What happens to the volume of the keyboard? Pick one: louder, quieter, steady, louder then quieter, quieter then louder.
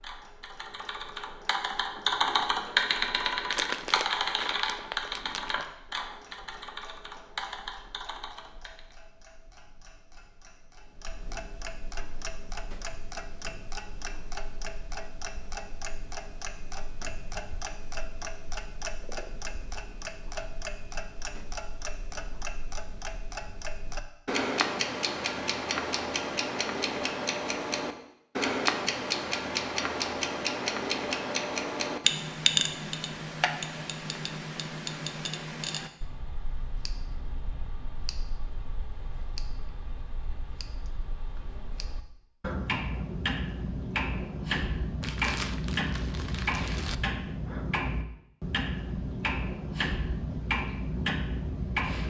louder then quieter.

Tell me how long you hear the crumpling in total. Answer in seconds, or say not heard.
4 s.